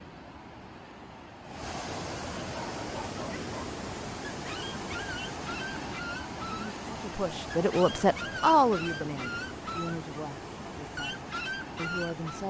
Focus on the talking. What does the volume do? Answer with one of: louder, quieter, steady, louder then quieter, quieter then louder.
louder then quieter.